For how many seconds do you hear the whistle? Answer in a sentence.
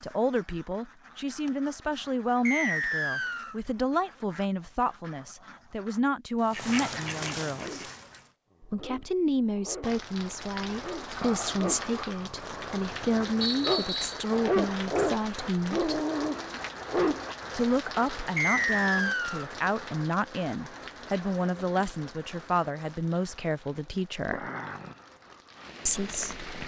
You can hear the whistle for 3 seconds altogether.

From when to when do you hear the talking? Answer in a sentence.
You can hear the talking from 0.0 to 7.8 s, from 8.6 to 15.9 s, from 17.6 to 24.4 s and from 25.9 to 26.4 s.